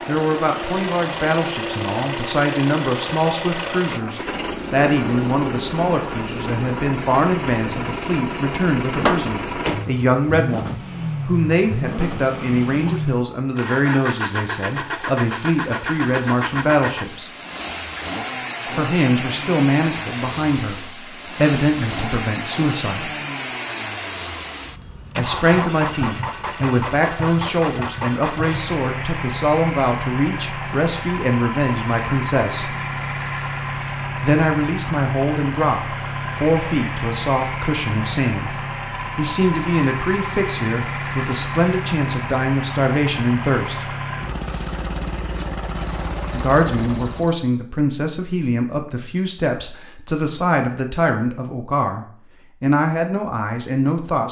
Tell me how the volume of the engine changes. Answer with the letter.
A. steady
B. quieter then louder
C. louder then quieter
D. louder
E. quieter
A.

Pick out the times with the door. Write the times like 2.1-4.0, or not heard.
8.9-9.8.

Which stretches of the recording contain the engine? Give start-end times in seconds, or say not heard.
0.0-47.4.